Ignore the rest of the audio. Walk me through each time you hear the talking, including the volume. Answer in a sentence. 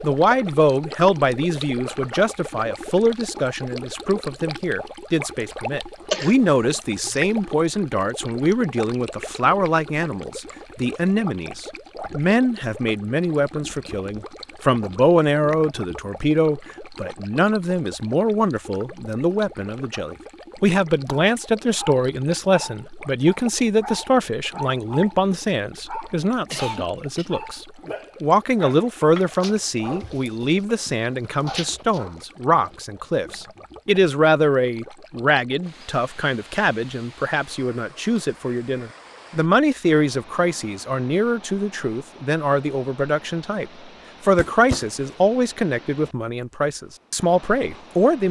You can hear the talking from 0.0 to 48.2 s, at a steady volume.